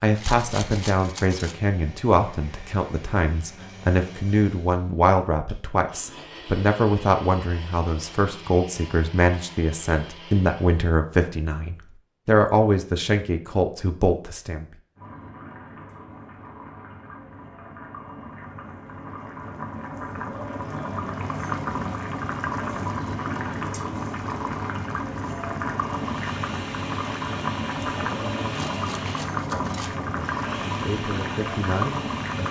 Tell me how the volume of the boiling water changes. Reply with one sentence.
The loudness of the boiling water goes up.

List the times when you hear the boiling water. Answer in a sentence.
You can hear the boiling water from 14.9 to 32.4 s.